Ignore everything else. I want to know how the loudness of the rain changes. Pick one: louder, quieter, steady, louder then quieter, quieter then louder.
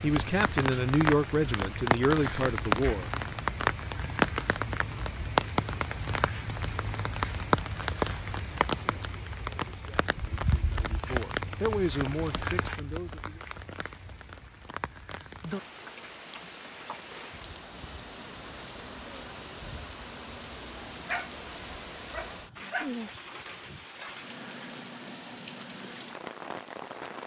quieter.